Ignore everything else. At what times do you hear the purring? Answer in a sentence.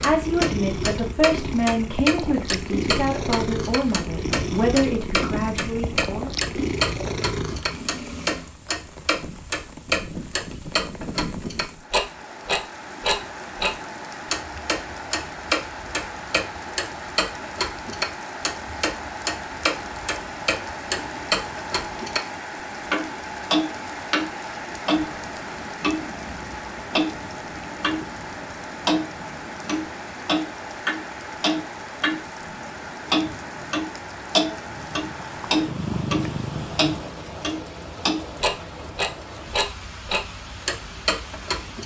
You can hear the purring from 0.0 to 8.5 s and from 34.6 to 37.2 s.